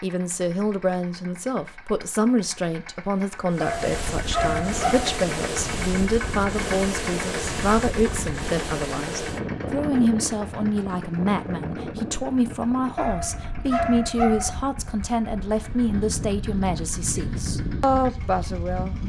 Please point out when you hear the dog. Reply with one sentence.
You can hear the dog from 3.6 to 5.2 s and from 12.9 to 14.6 s.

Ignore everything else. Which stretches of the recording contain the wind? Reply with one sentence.
The wind can be heard from 3.5 to 19.0 s.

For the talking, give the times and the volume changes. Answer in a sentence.
You can hear the talking from 0.0 to 19.0 s, at a steady volume.